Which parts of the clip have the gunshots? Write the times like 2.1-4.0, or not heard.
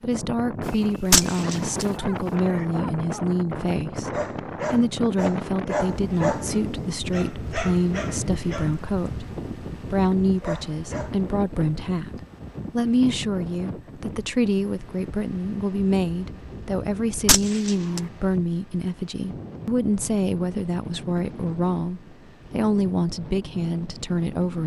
1.1-1.9, 17.2-18.0.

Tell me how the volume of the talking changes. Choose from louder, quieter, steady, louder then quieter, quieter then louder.
steady.